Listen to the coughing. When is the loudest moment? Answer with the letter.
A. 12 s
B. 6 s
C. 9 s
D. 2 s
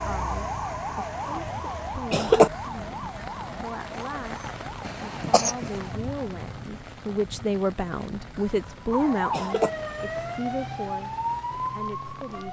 D.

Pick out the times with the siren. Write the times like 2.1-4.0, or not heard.
0.0-6.2, 8.9-12.4.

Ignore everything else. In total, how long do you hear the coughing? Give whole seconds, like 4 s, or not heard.
3 s.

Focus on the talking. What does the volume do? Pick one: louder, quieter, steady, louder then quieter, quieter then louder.
louder then quieter.